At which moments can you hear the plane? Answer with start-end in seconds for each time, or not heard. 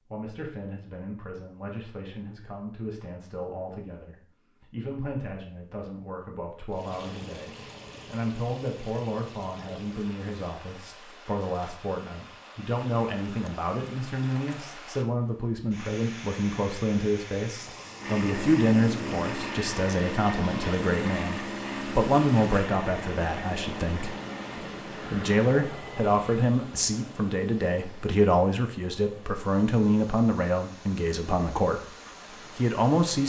17.9-26.4.